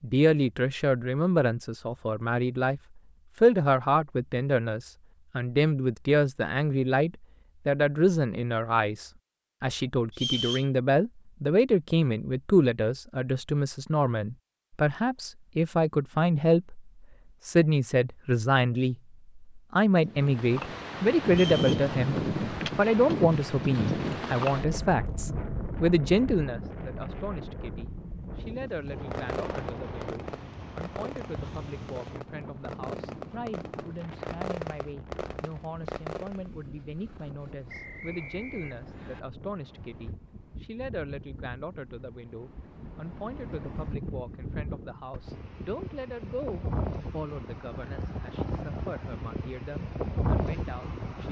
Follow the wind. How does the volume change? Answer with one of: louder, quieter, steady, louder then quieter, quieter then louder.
quieter then louder.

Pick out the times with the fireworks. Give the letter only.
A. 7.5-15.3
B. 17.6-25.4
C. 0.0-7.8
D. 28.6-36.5
D.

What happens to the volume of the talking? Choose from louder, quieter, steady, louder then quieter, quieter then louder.
quieter.